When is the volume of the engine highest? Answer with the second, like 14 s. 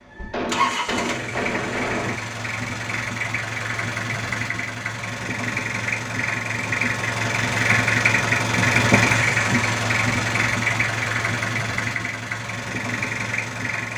9 s.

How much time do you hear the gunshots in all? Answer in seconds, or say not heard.
2 s.